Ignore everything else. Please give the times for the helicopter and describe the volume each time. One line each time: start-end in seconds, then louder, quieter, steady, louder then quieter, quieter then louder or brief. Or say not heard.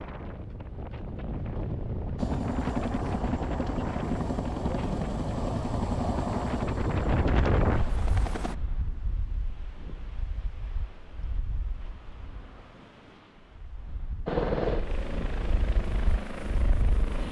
2.1-8.6 quieter
14.2-17.2 brief.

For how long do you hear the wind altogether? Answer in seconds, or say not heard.
17 s.